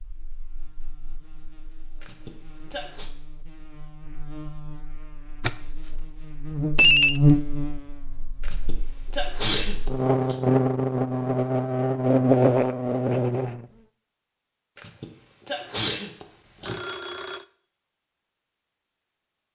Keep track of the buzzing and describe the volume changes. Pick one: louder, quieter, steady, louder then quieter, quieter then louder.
louder.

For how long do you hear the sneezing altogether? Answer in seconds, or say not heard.
5 s.